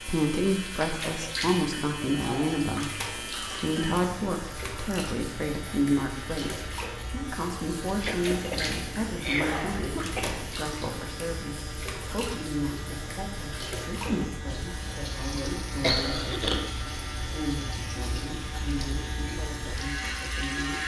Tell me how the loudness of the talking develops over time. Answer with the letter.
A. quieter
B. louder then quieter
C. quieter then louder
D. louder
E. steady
A.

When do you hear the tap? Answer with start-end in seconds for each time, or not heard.
0.0-20.8.